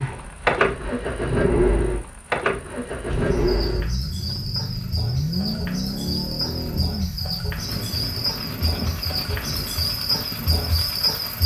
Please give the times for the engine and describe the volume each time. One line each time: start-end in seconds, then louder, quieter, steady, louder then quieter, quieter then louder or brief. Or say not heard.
0.0-11.4 quieter.